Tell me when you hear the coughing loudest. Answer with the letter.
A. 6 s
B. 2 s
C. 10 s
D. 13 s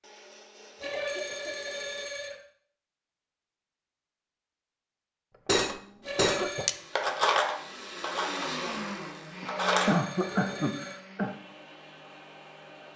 C.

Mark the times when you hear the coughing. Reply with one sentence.
The coughing can be heard from 0.8 to 1.9 s, from 5.3 to 6.7 s and from 9.4 to 11.3 s.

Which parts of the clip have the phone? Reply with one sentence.
You can hear the phone from 0.8 to 2.4 s, from 6.0 to 6.7 s and from 9.8 to 11.0 s.